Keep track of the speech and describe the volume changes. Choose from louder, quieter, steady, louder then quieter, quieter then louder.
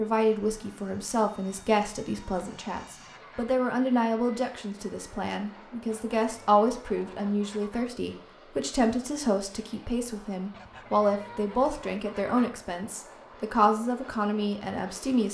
steady.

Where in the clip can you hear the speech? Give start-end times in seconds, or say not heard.
0.0-15.3.